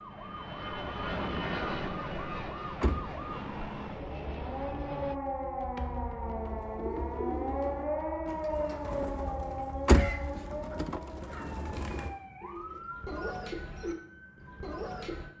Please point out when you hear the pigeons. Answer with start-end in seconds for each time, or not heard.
6.2-15.3.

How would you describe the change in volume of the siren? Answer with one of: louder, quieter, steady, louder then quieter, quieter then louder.
louder then quieter.